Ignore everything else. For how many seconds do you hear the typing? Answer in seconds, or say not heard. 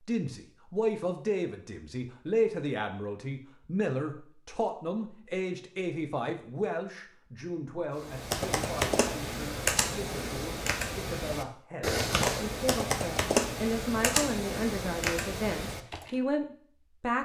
8 s.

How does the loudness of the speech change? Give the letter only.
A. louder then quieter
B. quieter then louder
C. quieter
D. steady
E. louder
B.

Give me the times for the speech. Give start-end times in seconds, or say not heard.
0.0-17.2.